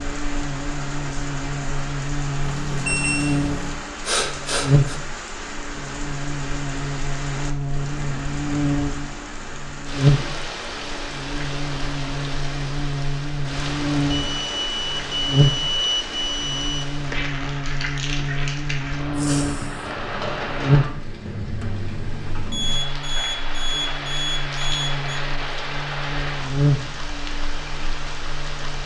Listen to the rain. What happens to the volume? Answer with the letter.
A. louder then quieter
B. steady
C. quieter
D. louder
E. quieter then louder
B.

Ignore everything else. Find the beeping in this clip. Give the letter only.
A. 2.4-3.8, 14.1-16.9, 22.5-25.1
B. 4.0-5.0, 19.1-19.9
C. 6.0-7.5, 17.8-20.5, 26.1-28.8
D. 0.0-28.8
A.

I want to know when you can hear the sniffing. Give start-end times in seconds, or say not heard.
4.0-5.0, 19.1-19.9.